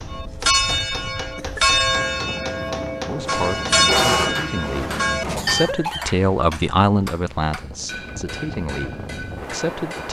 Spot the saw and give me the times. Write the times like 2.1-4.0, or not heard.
3.1-5.4.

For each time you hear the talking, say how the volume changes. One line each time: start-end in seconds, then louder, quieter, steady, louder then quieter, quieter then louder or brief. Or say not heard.
3.0-10.0 louder then quieter.